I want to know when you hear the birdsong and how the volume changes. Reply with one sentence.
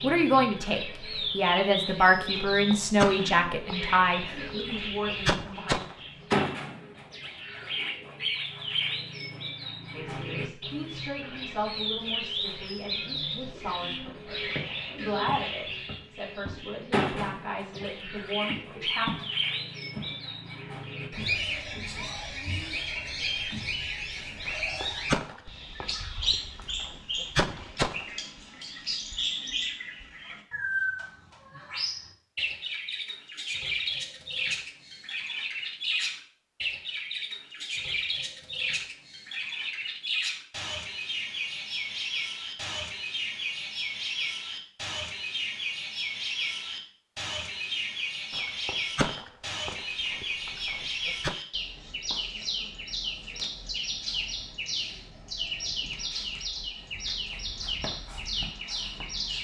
You can hear the birdsong from 0.0 to 59.3 s, at a steady volume.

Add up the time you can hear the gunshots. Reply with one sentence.
The gunshots can be heard for 11 seconds in total.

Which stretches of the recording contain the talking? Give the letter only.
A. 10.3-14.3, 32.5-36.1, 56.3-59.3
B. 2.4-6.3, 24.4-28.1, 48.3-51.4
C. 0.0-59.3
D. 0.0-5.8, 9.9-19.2
D.